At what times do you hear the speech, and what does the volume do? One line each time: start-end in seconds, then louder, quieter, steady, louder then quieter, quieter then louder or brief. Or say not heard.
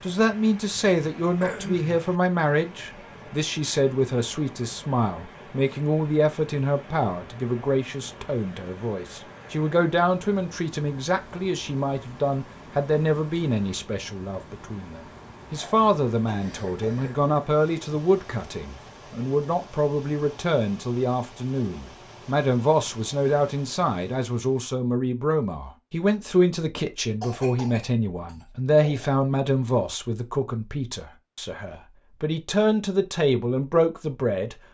0.0-34.5 steady.